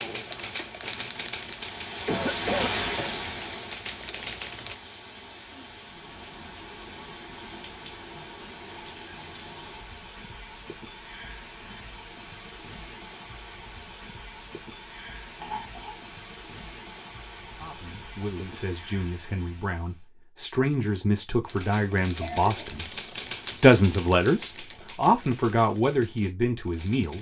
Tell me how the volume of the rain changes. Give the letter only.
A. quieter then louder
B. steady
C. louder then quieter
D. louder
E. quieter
E.